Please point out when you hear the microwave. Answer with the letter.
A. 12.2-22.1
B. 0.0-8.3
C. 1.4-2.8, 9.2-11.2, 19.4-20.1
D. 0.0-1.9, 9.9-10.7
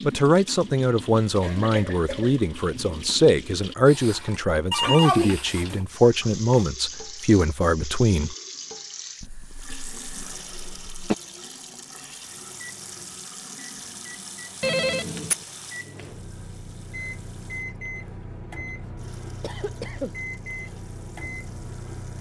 A.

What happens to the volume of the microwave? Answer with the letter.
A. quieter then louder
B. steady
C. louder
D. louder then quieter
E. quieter
C.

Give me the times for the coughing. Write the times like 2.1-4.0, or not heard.
1.4-2.8, 9.2-11.2, 19.4-20.1.